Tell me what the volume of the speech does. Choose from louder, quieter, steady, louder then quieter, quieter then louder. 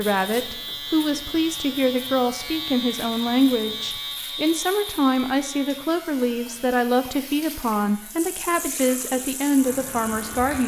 steady.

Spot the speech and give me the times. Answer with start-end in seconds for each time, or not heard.
0.0-10.6.